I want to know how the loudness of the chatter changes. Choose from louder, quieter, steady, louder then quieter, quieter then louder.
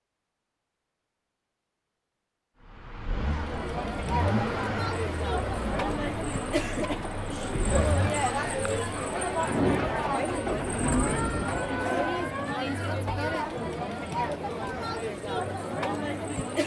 steady.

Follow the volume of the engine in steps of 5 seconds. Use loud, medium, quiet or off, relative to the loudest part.
loud, loud, loud, off.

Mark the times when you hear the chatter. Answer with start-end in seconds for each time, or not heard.
3.2-16.6.